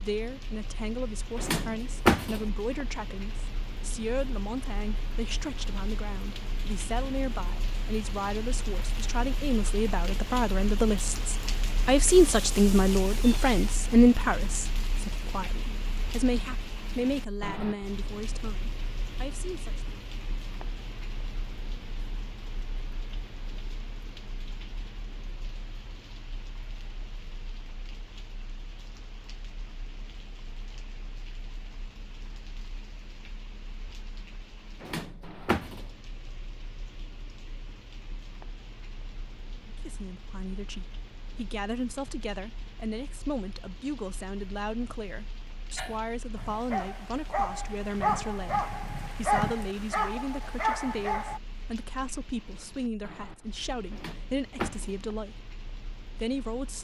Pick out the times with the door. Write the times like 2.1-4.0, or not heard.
1.4-2.4, 34.8-35.9, 53.9-55.0.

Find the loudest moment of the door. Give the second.
2 s.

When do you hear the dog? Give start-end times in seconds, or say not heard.
45.8-51.4.